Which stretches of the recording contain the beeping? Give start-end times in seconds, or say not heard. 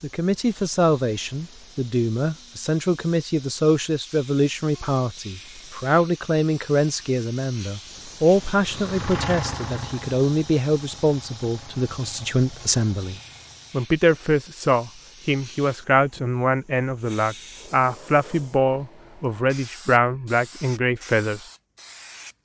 not heard.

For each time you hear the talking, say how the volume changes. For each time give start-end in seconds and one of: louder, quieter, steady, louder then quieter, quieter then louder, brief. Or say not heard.
0.0-21.4 steady.